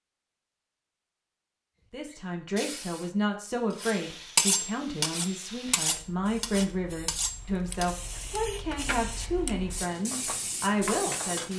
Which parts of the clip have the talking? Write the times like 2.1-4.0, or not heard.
1.9-11.5.